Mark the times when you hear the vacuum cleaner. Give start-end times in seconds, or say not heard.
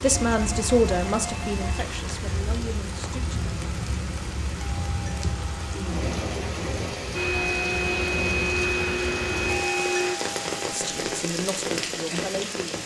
7.1-10.2.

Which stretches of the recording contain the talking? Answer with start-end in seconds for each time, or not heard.
0.0-3.4, 10.7-12.8.